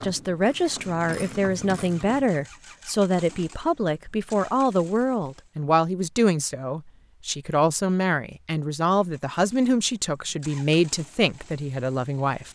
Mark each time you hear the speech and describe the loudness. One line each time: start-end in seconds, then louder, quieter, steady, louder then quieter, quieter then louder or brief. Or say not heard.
0.0-12.4 steady.